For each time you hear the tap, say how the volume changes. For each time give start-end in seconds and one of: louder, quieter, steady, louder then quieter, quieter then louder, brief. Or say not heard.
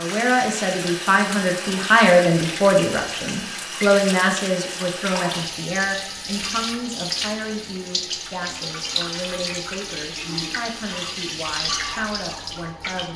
0.0-13.1 steady.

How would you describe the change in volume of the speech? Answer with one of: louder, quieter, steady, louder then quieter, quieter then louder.
quieter.